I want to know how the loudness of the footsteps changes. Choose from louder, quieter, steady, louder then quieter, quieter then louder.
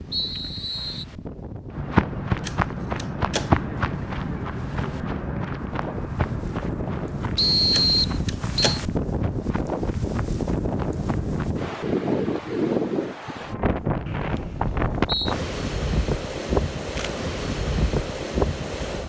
quieter.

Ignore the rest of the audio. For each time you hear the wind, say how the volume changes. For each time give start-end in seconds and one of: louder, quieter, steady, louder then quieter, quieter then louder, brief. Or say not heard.
0.0-19.0 louder.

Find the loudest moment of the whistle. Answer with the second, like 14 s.
8 s.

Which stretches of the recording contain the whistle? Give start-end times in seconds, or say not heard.
0.1-1.1, 7.3-8.8, 14.1-15.3.